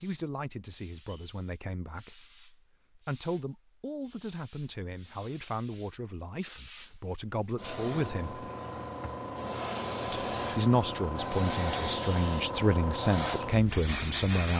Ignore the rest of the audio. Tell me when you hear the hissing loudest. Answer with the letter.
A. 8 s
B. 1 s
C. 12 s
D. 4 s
C.